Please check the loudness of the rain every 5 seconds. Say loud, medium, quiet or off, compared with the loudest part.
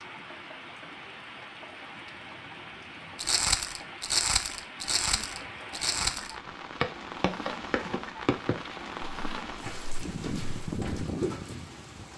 medium, loud, loud.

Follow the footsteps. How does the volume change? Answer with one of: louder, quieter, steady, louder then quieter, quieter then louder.
quieter.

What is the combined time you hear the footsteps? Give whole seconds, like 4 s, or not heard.
8 s.